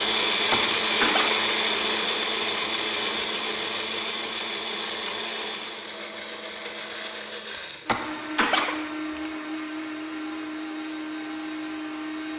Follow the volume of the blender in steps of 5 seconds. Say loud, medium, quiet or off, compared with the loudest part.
loud, medium, medium.